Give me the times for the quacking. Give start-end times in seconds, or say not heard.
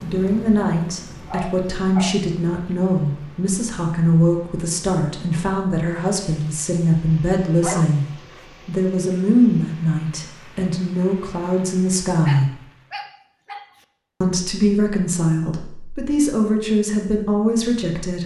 not heard.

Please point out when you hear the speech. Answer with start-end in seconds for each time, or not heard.
0.0-8.1, 8.7-12.5, 14.2-18.2.